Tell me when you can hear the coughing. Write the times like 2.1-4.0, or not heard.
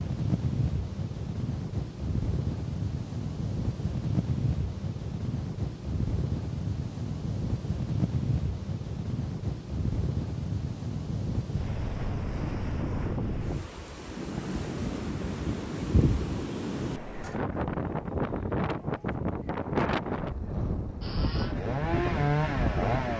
not heard.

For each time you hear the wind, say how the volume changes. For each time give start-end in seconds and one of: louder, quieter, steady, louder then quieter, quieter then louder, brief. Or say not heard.
0.0-23.1 steady.